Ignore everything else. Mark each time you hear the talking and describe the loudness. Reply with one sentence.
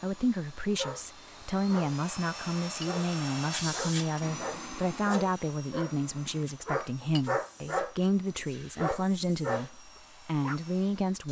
You can hear the talking from 0.0 to 11.2 s, at a steady volume.